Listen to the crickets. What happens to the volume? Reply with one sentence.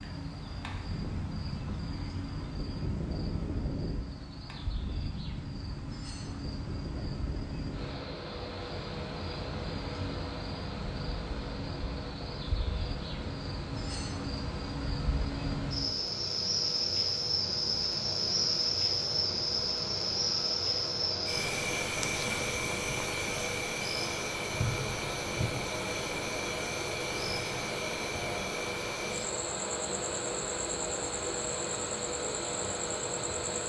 The volume of the crickets goes up, then down.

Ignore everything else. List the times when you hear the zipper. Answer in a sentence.
You can't hear the zipper here.